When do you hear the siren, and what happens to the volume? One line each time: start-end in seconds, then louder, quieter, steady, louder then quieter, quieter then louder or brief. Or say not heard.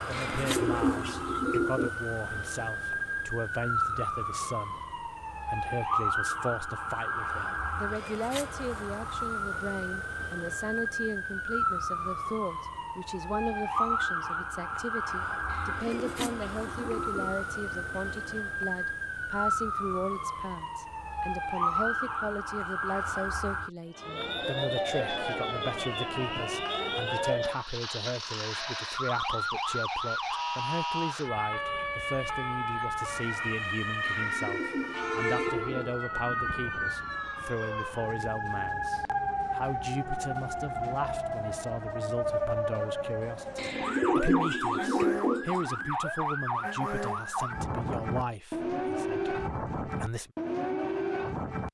0.0-51.7 steady.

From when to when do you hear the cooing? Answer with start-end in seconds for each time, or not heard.
0.1-1.9, 15.4-18.1, 34.0-36.5, 43.5-45.9.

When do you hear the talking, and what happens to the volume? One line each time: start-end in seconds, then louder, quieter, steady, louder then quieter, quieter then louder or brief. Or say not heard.
0.1-50.3 steady.